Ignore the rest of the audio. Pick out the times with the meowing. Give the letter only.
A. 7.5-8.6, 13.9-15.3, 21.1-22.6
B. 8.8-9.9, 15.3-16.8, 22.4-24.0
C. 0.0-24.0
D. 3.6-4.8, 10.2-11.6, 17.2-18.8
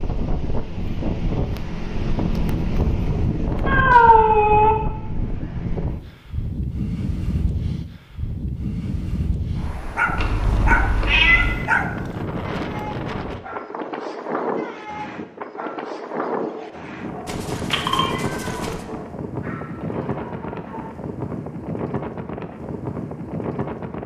D.